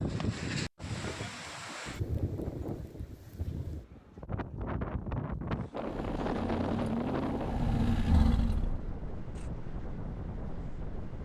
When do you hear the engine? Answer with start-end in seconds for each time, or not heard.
5.7-9.5.